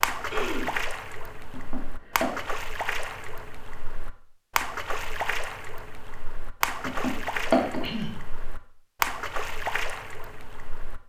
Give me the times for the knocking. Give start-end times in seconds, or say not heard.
1.5-2.3, 6.8-7.8.